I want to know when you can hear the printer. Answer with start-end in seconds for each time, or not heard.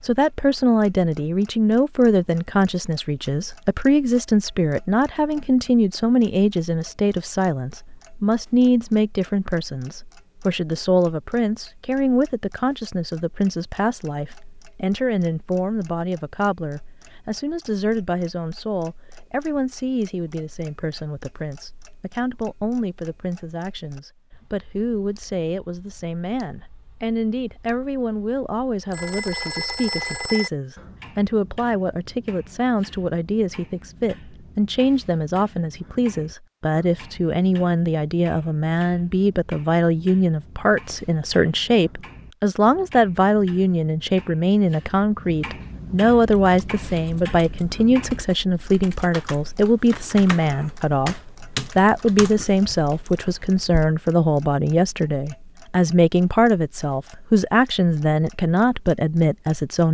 not heard.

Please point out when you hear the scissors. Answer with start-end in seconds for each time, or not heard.
not heard.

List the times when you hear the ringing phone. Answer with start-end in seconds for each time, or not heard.
28.9-30.5.